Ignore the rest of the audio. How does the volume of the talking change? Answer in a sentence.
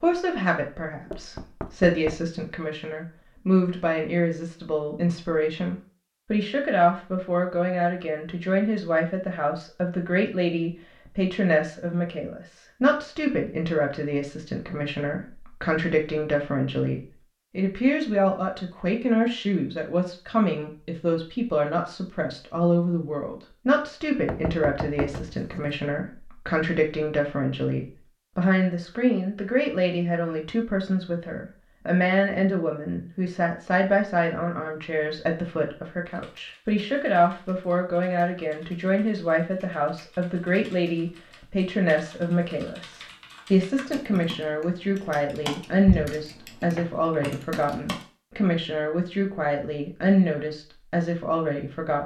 The volume of the talking stays about the same.